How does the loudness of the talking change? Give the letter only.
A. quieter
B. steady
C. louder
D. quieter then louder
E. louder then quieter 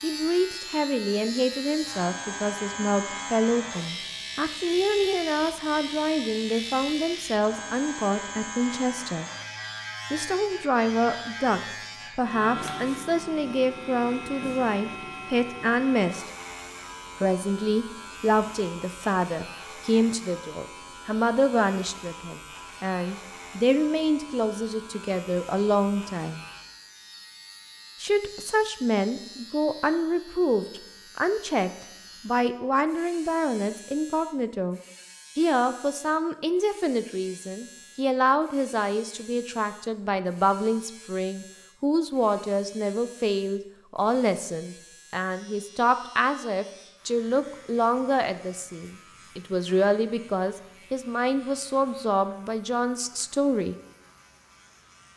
B.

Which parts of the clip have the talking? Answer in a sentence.
You can hear the talking from 0.0 to 9.3 s, from 10.1 to 16.2 s, from 17.2 to 26.4 s and from 28.0 to 53.8 s.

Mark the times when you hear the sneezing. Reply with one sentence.
The sneezing can't be heard in this clip.